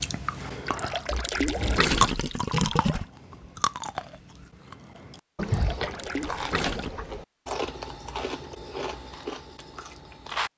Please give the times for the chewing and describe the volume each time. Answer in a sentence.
You can hear the chewing from 0.0 to 10.5 s, getting quieter.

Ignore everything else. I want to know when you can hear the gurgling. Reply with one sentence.
You can hear the gurgling from 0.7 to 3.0 s and from 5.4 to 7.0 s.